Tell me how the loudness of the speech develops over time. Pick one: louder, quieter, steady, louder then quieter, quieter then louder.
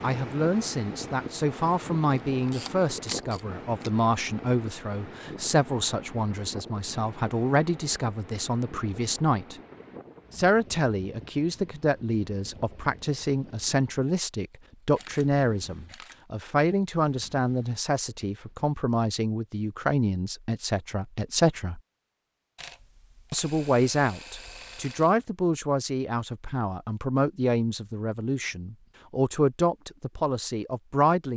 steady.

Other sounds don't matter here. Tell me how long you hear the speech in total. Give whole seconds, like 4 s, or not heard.
29 s.